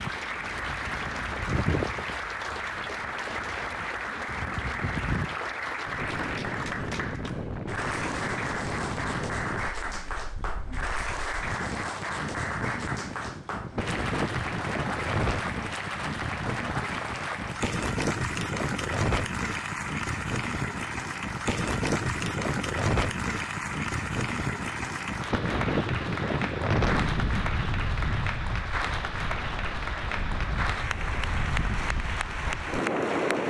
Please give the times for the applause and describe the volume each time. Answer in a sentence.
The applause can be heard from 0.0 to 33.4 s, at a steady volume.